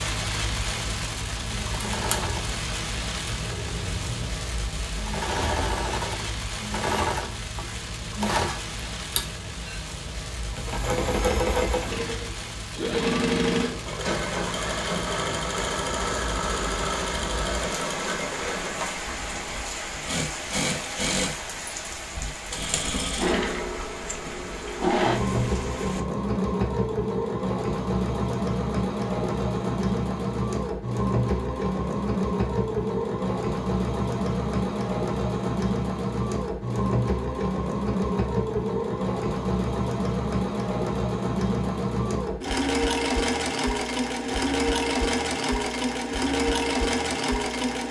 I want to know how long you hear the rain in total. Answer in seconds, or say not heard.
26 s.